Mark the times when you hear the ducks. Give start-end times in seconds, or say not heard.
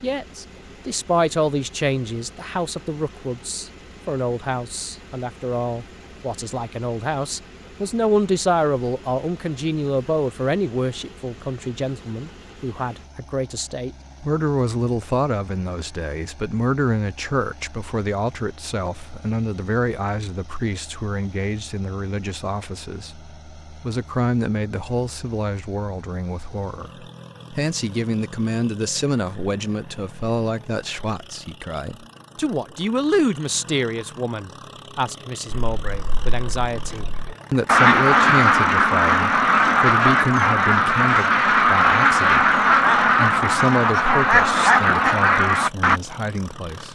35.5-46.0.